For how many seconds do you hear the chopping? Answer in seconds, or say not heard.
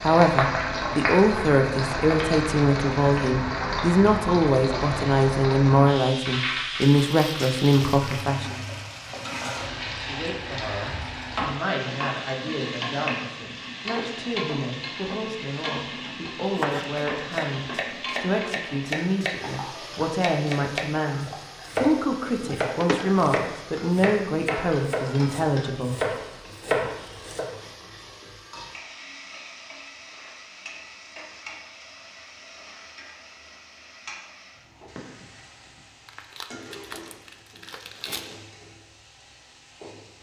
11 s.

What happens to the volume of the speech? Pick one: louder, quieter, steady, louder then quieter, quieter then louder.
quieter then louder.